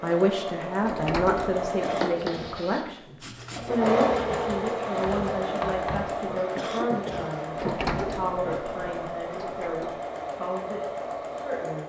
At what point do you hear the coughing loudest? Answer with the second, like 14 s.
7 s.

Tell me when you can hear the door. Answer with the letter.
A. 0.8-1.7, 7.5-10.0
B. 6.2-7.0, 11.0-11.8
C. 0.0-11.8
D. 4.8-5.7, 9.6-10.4
A.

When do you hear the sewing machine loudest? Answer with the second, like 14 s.
4 s.